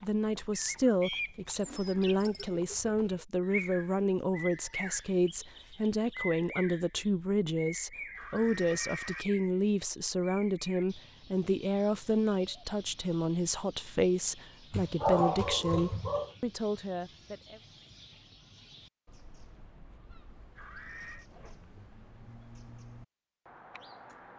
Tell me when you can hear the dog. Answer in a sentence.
You can hear the dog from 14.7 to 16.3 s.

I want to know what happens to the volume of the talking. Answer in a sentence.
The loudness of the talking stays about the same.